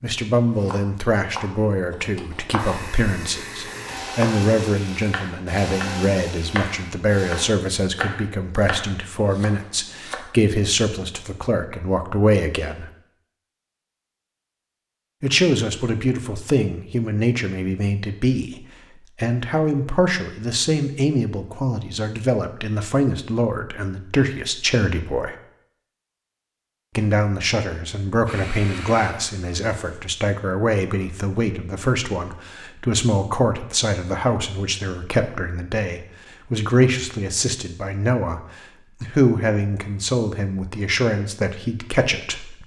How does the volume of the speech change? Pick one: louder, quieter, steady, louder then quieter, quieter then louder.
steady.